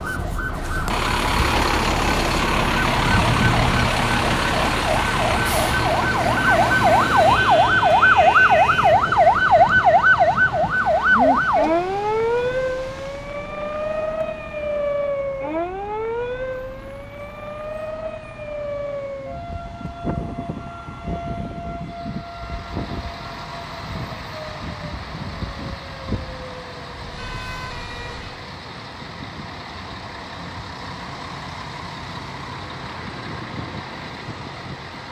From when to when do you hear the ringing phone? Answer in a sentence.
The ringing phone can't be heard in this clip.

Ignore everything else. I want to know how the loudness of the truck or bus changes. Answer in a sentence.
The loudness of the truck or bus goes down, then up.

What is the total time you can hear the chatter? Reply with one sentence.
You can't hear the chatter here.